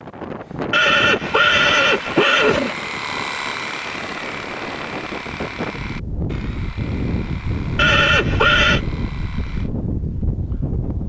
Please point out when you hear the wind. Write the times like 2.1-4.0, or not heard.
0.0-11.0.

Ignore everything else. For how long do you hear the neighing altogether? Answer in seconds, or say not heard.
3 s.